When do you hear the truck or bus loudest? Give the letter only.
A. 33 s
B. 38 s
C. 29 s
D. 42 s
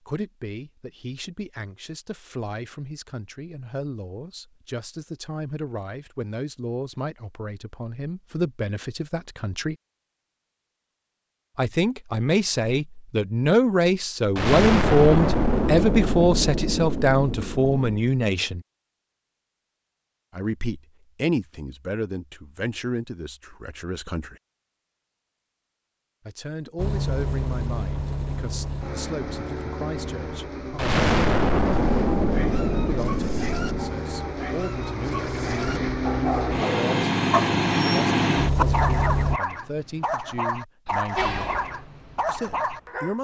B.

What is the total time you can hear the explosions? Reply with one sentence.
The explosions can be heard for 7 seconds in total.